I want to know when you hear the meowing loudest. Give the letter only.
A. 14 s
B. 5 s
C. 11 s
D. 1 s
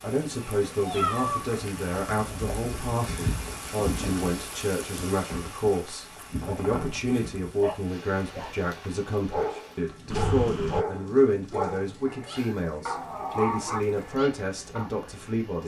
D.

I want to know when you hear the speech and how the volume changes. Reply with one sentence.
The speech can be heard from 0.0 to 15.6 s, at a steady volume.